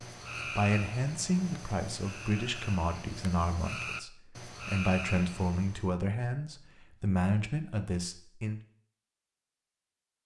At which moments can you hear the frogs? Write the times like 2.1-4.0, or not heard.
0.0-6.0.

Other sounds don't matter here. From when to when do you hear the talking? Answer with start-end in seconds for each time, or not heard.
0.3-8.6.